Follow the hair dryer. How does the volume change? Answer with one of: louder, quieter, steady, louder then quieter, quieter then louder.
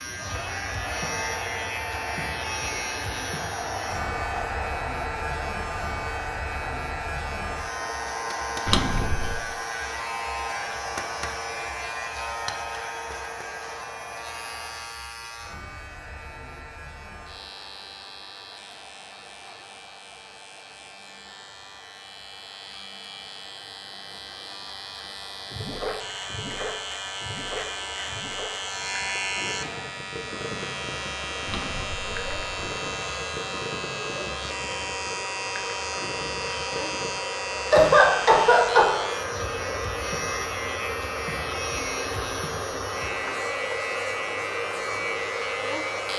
quieter then louder.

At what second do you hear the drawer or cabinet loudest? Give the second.
9 s.